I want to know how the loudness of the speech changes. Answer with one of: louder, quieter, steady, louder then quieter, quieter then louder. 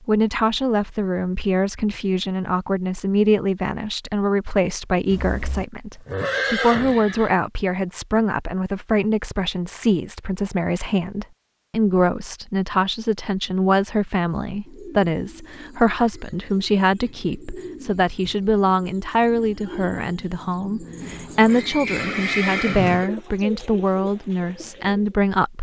steady.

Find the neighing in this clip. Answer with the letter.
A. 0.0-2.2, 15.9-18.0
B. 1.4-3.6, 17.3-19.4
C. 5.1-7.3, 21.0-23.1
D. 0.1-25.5
C.